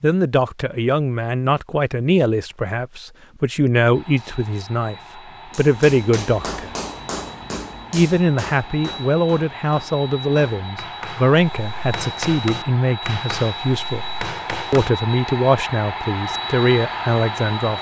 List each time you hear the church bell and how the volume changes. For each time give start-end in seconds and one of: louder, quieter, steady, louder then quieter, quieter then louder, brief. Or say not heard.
not heard.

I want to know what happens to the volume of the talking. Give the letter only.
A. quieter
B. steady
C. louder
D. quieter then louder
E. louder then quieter
B.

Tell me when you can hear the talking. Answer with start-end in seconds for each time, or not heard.
0.0-6.8, 7.9-14.1, 14.7-17.7.